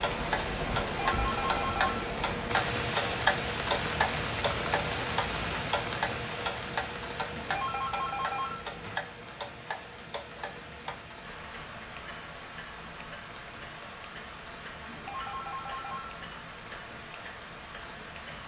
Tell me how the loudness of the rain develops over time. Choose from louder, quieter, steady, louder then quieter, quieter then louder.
quieter.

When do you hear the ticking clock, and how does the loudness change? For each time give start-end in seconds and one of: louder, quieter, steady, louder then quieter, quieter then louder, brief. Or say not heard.
0.0-18.4 quieter.